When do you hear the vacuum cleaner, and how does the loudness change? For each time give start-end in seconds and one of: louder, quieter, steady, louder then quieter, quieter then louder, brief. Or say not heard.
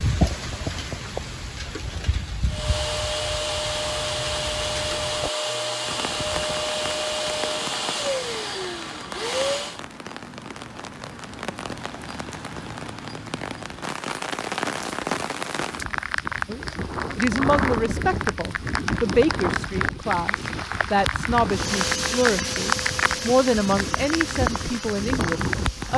2.5-9.8 steady
21.5-25.9 quieter.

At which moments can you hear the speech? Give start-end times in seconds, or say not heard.
16.4-25.9.